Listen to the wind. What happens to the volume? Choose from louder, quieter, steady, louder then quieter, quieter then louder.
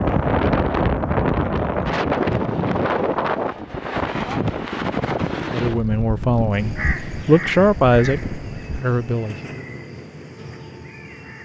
quieter.